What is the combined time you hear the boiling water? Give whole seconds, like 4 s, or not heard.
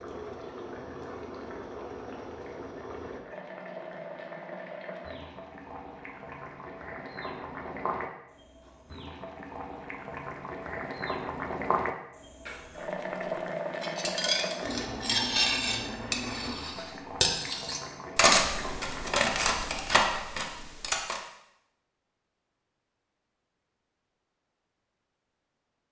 19 s.